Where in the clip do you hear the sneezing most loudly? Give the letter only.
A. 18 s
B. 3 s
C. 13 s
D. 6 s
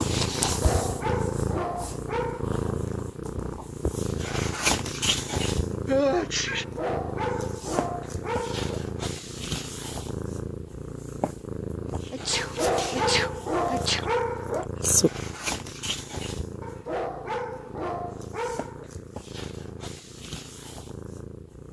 D.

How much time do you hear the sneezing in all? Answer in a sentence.
The sneezing can be heard for 3 seconds in total.